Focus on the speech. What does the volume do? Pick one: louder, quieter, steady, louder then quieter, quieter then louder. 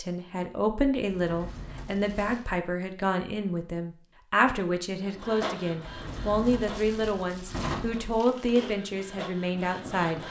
steady.